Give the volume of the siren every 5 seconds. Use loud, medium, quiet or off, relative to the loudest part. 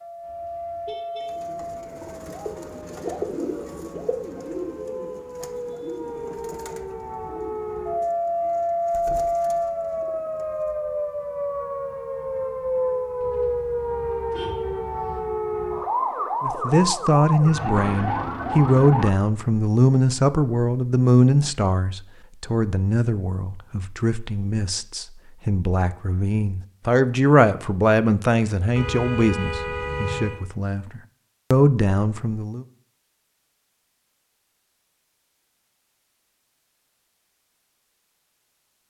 medium, loud, loud, loud, off, off, off, off.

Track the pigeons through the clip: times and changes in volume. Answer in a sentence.
The pigeons can be heard from 1.2 to 10.7 s, getting quieter.